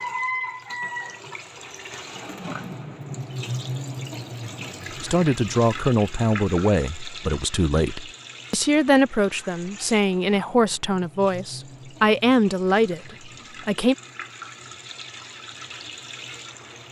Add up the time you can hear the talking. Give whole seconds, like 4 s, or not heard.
9 s.